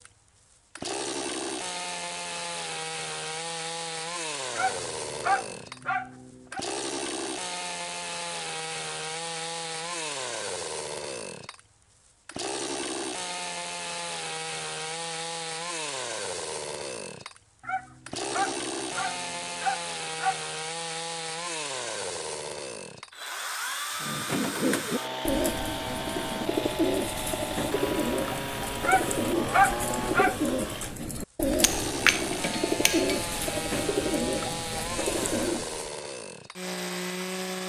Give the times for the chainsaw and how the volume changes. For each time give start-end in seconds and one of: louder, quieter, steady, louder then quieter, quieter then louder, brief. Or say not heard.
0.0-37.6 steady.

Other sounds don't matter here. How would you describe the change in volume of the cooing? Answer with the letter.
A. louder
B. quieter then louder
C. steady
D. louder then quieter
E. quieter
C.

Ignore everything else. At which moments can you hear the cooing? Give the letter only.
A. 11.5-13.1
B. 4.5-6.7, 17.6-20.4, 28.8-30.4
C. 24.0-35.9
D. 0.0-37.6
C.